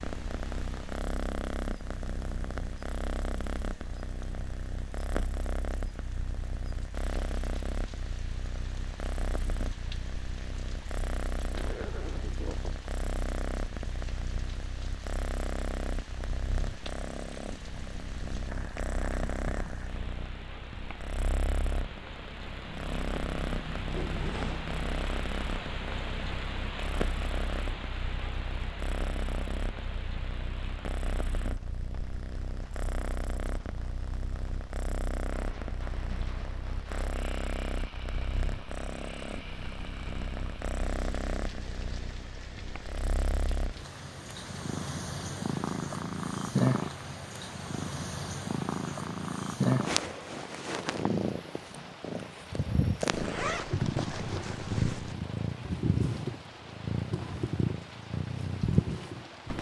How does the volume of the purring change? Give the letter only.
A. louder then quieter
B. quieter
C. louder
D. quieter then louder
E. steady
C.